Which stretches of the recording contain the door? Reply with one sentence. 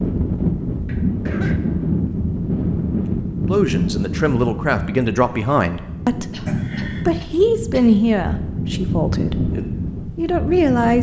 You can hear the door from 6.5 to 7.0 s.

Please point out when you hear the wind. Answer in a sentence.
The wind can be heard from 0.0 to 10.9 s.